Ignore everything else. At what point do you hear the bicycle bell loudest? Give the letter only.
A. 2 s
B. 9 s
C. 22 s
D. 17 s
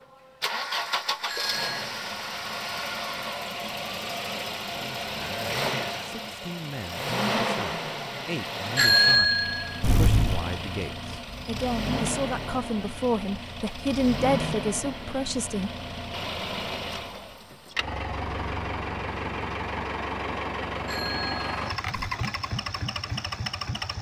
B.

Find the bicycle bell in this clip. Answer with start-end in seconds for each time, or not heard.
1.2-1.8, 8.8-10.4, 20.9-22.1.